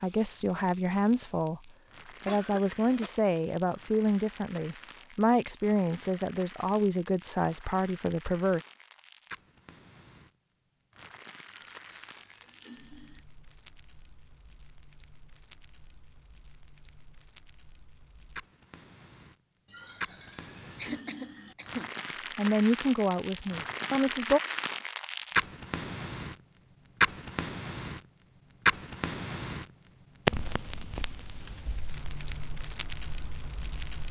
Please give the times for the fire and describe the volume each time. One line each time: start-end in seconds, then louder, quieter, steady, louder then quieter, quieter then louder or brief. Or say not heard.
0.0-34.0 louder.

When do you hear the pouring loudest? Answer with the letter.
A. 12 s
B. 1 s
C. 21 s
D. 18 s
C.